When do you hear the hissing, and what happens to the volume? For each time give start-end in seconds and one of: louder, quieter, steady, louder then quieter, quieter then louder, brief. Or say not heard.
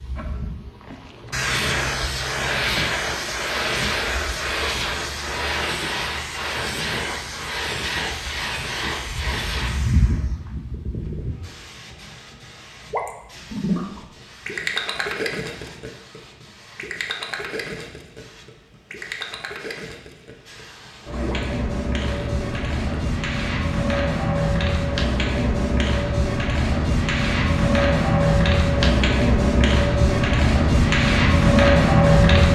0.0-32.5 quieter then louder.